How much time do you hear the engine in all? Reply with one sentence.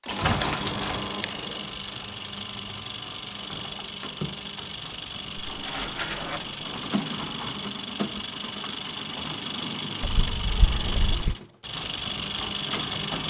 The engine can be heard for 13 seconds in total.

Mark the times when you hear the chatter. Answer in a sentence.
The chatter can't be heard in this clip.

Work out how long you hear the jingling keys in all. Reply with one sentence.
The jingling keys can be heard for 4 seconds in total.